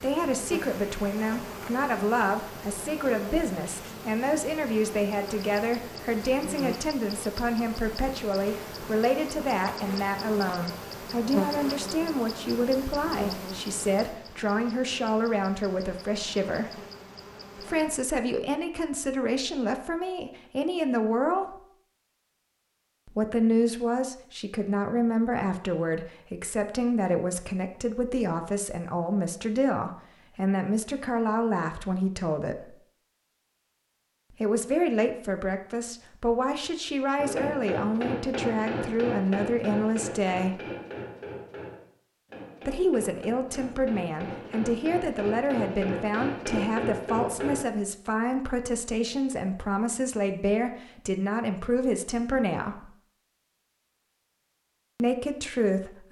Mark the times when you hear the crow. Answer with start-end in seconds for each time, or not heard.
not heard.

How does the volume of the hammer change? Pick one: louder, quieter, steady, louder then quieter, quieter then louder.
quieter then louder.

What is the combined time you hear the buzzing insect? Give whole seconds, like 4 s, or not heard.
18 s.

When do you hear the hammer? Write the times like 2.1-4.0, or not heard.
37.1-47.6.